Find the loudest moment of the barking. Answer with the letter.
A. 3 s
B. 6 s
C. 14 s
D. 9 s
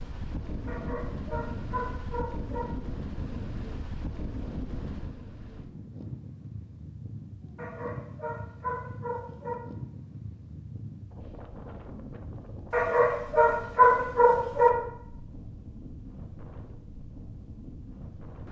C.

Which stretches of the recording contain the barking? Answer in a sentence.
You can hear the barking from 0.7 to 2.6 s, from 7.5 to 9.6 s and from 12.7 to 14.7 s.